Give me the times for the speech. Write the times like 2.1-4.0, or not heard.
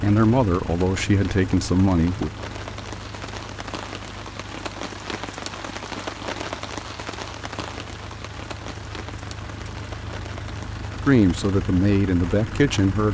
0.0-2.3, 11.1-13.0.